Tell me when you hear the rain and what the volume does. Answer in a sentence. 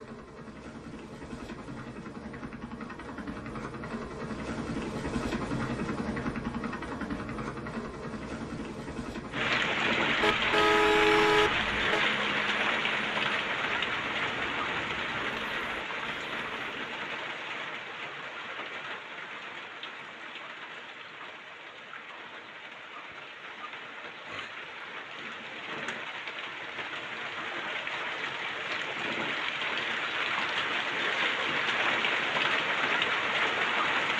The rain can be heard from 9.3 to 34.1 s, getting quieter then louder.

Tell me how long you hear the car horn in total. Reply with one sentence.
The car horn can be heard for 2 seconds in total.